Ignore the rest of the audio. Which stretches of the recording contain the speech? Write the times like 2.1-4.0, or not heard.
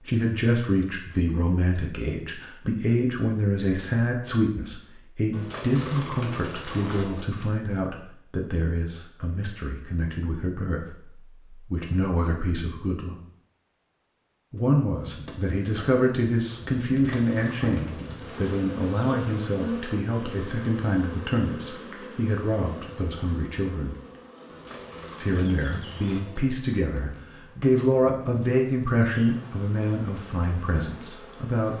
0.1-11.1, 11.7-13.2, 14.5-23.9, 25.2-31.7.